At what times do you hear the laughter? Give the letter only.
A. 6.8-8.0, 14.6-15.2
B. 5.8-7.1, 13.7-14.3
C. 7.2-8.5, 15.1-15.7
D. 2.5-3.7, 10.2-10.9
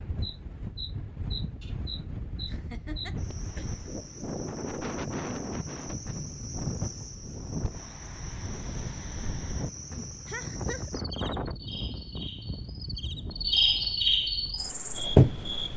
D.